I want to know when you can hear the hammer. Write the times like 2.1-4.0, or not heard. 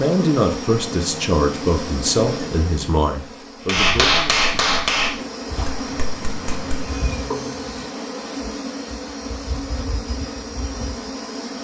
3.6-7.0.